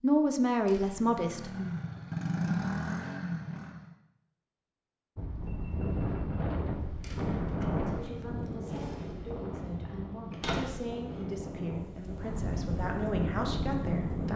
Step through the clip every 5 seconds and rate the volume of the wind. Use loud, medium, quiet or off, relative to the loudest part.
off, loud, loud.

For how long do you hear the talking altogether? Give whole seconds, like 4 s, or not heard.
8 s.